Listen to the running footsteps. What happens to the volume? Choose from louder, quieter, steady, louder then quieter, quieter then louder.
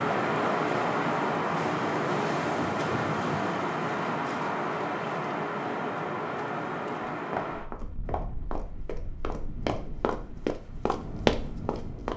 louder.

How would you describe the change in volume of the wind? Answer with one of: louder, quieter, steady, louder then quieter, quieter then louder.
quieter.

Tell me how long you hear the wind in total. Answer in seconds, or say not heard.
12 s.